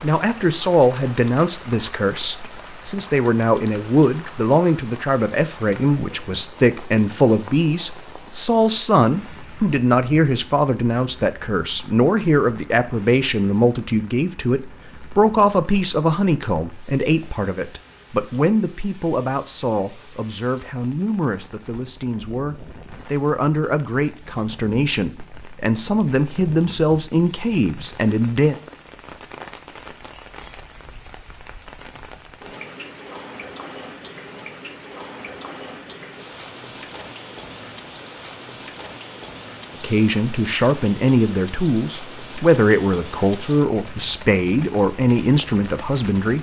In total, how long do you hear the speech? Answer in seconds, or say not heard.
35 s.